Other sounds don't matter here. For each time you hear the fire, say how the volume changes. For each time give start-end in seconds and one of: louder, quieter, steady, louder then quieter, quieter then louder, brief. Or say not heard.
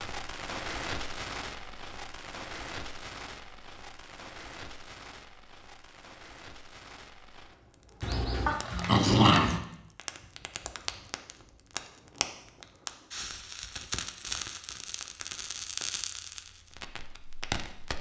0.0-17.9 quieter then louder.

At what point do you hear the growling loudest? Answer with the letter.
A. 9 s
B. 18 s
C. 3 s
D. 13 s
A.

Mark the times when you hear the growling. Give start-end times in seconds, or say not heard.
8.0-9.6.